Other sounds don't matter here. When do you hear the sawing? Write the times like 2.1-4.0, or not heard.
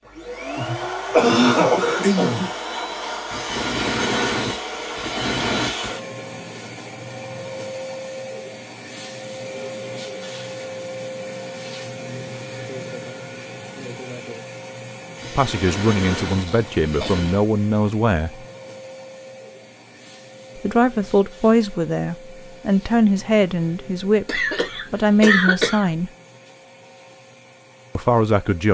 3.2-6.0, 15.2-17.4.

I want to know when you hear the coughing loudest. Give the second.
1 s.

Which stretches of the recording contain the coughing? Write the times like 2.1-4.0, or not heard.
0.6-2.5, 16.4-17.1, 24.2-25.9.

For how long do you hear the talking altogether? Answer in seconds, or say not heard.
9 s.